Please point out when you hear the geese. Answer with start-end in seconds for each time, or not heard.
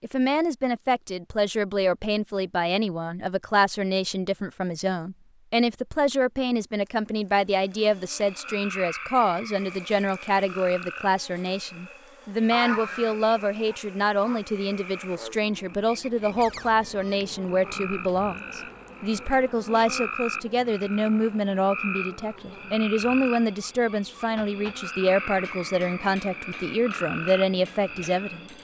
12.5-14.4.